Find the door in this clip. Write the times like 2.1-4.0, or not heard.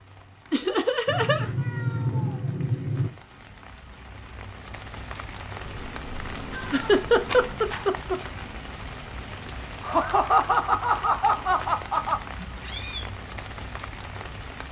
not heard.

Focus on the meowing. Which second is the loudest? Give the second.
2 s.